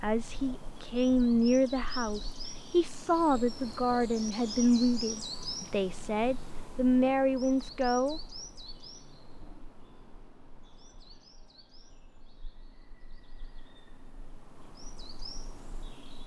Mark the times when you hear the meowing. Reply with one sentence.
You can't hear the meowing here.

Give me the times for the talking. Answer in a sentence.
You can hear the talking from 0.0 to 8.2 s.